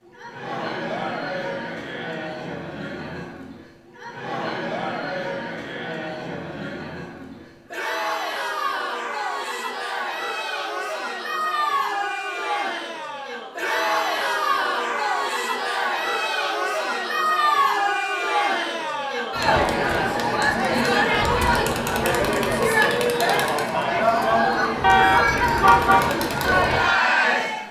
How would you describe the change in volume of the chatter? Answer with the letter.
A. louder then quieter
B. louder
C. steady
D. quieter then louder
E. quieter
B.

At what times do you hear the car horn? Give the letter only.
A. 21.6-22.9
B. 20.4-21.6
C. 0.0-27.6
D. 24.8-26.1
D.